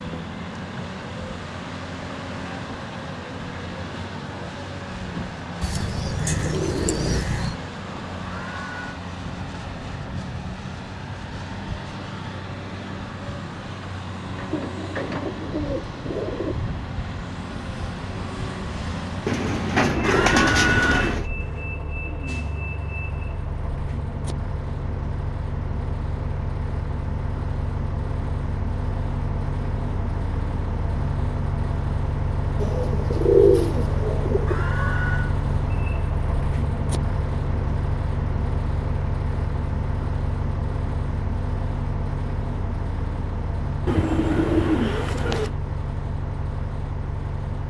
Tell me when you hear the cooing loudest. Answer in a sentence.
The loudest moment of the cooing is at 33 seconds.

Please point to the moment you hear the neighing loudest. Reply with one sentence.
The volume of the neighing peaks at 21 seconds.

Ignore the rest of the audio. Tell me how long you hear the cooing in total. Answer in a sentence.
You can hear the cooing for 10 seconds altogether.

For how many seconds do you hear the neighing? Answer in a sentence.
You can hear the neighing for 3 seconds altogether.